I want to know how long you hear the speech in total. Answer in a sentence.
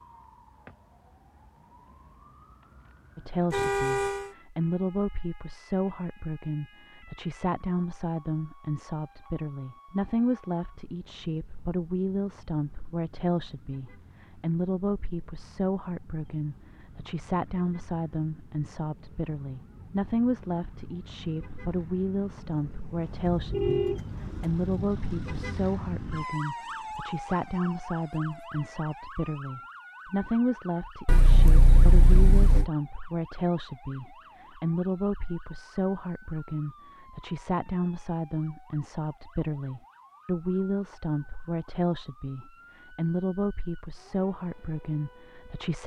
You can hear the speech for 43 seconds altogether.